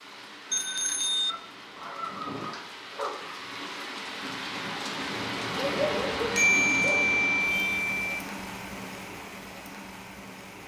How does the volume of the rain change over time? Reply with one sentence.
The loudness of the rain goes up, then down.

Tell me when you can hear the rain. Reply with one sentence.
The rain can be heard from 0.0 to 10.6 s.